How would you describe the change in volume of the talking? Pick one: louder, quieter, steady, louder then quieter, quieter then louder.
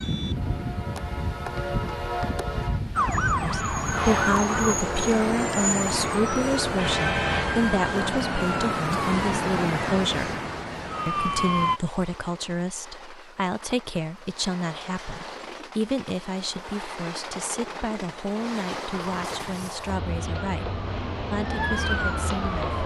quieter.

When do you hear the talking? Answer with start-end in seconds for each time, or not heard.
3.3-10.3, 11.1-22.7.